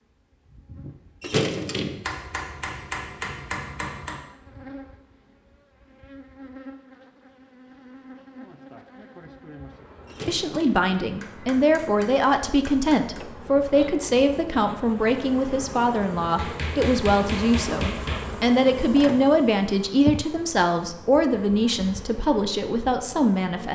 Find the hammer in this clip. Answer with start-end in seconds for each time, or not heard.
2.0-4.2, 11.0-13.2, 16.4-18.4.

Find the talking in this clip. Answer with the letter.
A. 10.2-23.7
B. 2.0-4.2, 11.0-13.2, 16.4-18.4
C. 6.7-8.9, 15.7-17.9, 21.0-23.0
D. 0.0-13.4
A.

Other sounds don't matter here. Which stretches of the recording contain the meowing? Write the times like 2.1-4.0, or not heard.
not heard.